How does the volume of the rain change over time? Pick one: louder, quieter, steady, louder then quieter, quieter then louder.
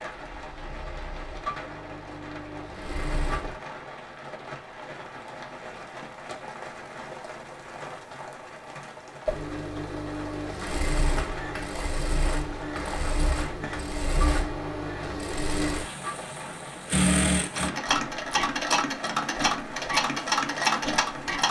steady.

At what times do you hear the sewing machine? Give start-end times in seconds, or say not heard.
0.2-3.5, 9.2-21.4.